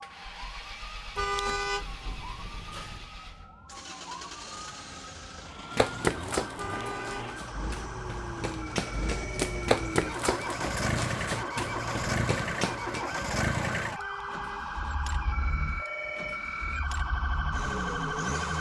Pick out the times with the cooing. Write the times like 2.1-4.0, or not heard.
not heard.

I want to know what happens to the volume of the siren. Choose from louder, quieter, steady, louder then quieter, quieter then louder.
louder.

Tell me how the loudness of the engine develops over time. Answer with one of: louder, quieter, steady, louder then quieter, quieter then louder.
louder then quieter.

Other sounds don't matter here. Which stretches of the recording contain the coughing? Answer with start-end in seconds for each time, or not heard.
not heard.